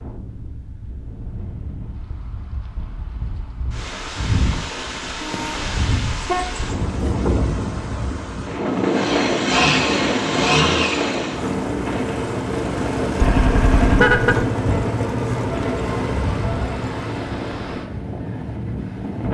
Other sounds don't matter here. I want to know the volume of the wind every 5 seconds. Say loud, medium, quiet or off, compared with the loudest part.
medium, loud, loud, medium.